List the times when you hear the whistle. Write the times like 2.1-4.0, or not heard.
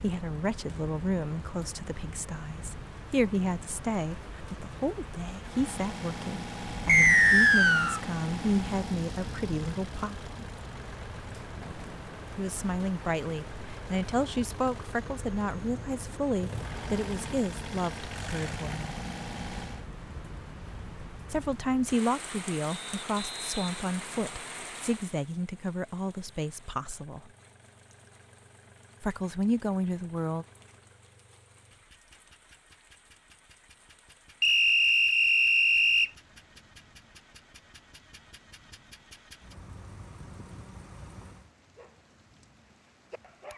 6.8-8.0, 22.7-24.4, 34.4-36.1.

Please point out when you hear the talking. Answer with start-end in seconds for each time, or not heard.
0.0-10.3, 12.3-18.9, 21.3-27.2, 29.0-30.4.